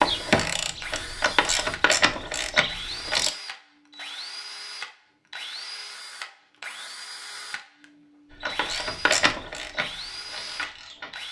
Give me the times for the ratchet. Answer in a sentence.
The ratchet can be heard from 0.0 to 3.3 s and from 8.3 to 11.2 s.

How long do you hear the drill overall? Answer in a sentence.
The drill can be heard for 11 seconds in total.